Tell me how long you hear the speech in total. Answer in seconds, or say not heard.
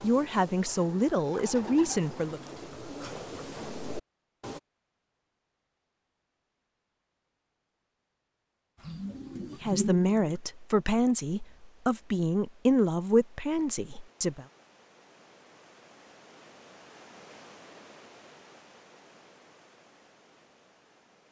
7 s.